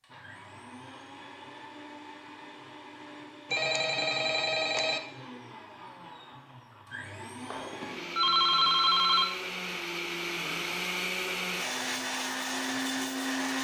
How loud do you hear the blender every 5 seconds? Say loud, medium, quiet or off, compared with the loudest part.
quiet, medium, loud.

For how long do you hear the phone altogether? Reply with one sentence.
You can hear the phone for 3 seconds altogether.